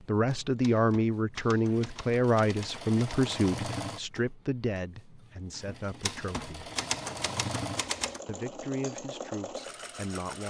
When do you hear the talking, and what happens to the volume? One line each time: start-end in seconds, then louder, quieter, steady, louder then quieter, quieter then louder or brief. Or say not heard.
0.1-6.7 quieter
8.2-10.4 brief.